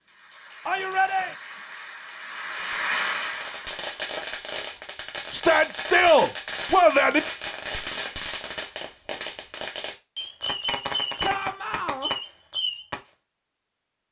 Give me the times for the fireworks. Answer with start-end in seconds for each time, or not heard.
2.5-13.0.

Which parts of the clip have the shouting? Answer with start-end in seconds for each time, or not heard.
0.7-1.4, 5.3-7.2, 11.2-12.1.